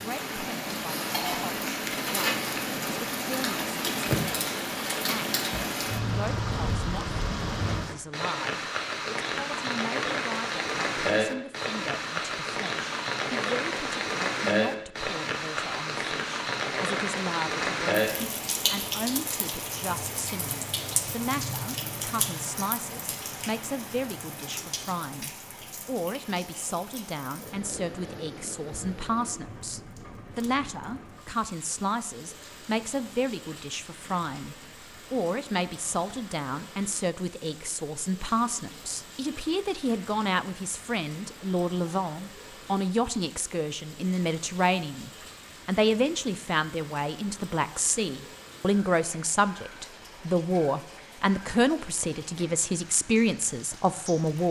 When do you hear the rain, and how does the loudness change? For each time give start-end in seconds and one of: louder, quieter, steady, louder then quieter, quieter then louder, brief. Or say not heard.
0.0-54.4 quieter.